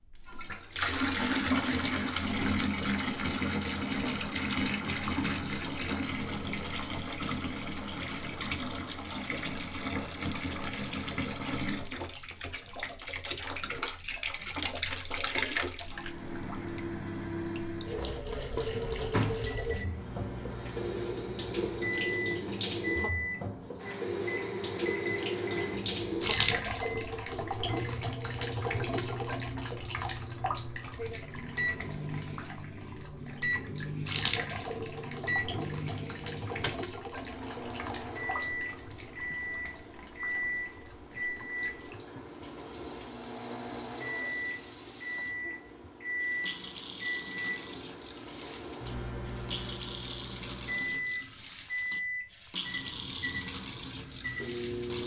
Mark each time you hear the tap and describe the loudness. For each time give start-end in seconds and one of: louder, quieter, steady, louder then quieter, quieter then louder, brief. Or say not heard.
0.0-55.0 quieter.